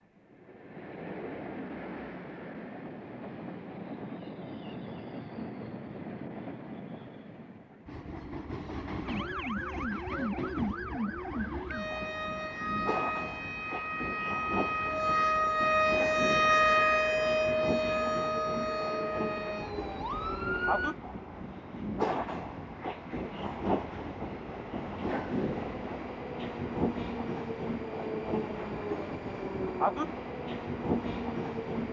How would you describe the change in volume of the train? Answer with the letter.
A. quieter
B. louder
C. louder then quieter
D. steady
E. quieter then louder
B.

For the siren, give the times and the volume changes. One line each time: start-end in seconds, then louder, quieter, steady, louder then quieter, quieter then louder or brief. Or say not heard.
9.1-20.9 louder then quieter.